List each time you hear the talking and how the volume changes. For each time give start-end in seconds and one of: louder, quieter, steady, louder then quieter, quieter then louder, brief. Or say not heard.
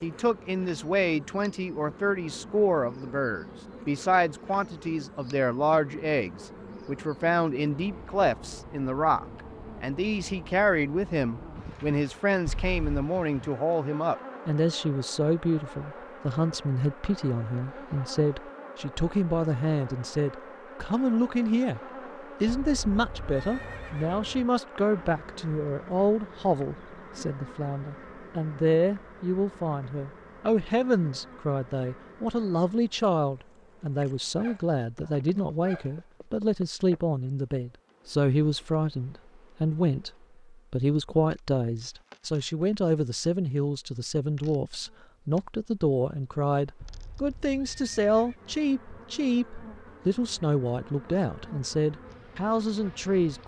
0.0-21.8 steady
22.4-53.4 steady.